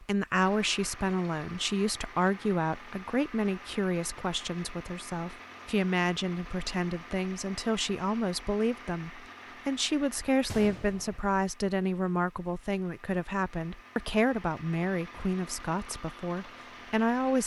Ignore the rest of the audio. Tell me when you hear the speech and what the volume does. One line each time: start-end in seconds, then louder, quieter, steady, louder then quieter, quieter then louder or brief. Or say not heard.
0.0-17.4 steady.